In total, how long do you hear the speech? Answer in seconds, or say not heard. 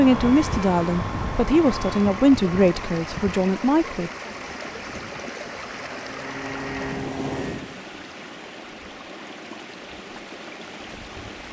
4 s.